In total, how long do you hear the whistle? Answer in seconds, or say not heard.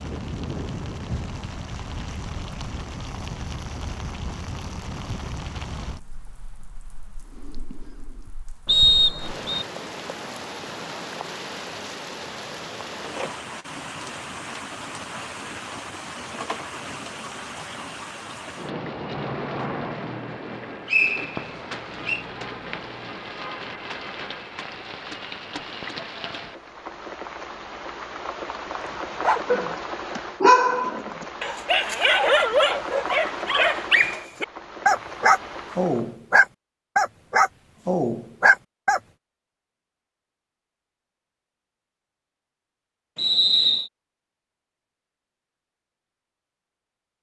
3 s.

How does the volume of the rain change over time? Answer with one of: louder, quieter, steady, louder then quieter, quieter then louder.
steady.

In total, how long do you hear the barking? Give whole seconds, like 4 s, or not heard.
10 s.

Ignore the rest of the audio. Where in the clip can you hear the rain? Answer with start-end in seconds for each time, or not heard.
0.0-36.1.